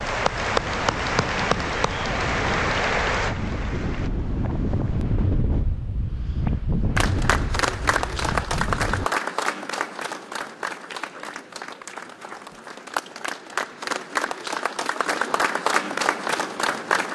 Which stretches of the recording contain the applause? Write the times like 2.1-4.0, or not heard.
0.0-4.1, 7.0-17.0.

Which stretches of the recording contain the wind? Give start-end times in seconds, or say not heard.
0.0-9.1.